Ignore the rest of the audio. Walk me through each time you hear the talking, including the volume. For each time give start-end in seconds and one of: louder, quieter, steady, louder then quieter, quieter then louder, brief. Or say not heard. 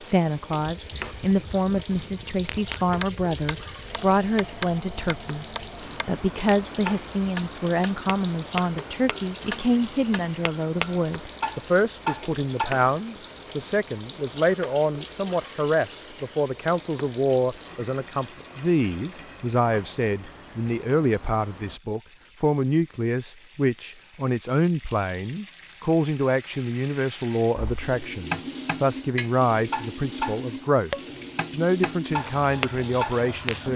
0.0-5.5 steady
6.0-30.9 steady
31.5-33.7 brief.